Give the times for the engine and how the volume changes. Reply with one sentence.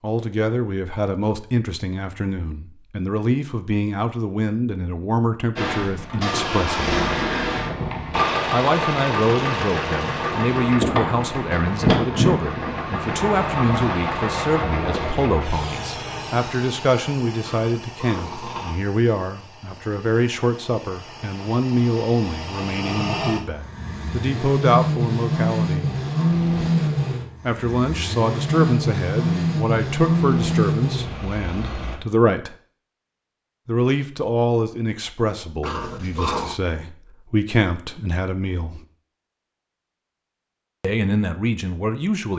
You can hear the engine from 5.5 to 32.0 s, getting quieter then louder.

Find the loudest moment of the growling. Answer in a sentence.
The loudest moment of the growling is at 36 seconds.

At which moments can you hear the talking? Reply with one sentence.
You can hear the talking from 0.0 to 7.0 s, from 8.5 to 25.9 s, from 27.4 to 32.5 s, from 33.6 to 38.8 s and from 40.8 to 42.3 s.